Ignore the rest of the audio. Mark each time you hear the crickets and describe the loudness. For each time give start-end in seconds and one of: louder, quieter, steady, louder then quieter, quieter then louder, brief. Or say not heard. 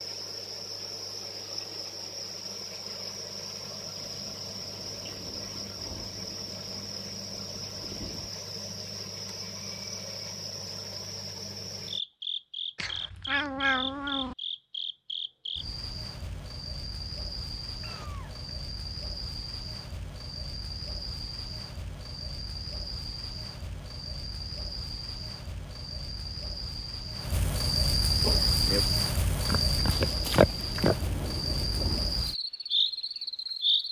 0.0-33.8 louder.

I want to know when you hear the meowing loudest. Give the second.
14 s.